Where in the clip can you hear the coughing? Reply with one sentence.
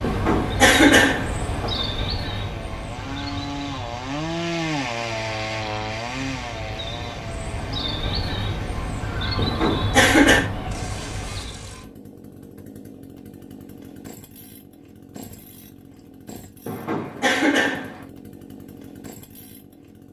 You can hear the coughing from 0.0 to 1.9 s, from 9.3 to 10.5 s and from 16.6 to 18.1 s.